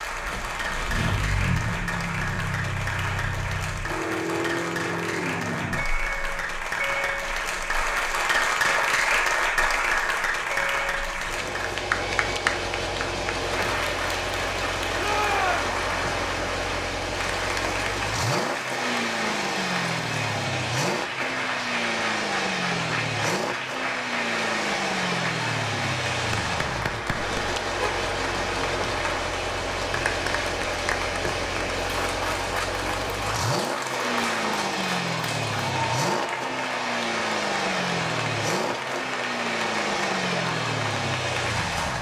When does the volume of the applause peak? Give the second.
9 s.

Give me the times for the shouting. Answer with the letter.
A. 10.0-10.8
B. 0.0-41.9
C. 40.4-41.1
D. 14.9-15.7
D.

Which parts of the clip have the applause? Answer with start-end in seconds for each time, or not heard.
0.0-41.9.